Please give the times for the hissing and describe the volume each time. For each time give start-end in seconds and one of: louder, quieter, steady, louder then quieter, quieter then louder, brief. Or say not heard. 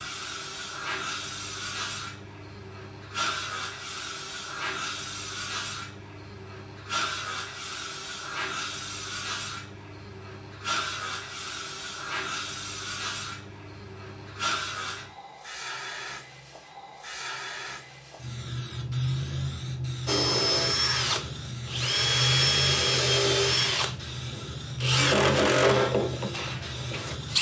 0.0-27.3 steady.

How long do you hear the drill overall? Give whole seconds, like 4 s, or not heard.
7 s.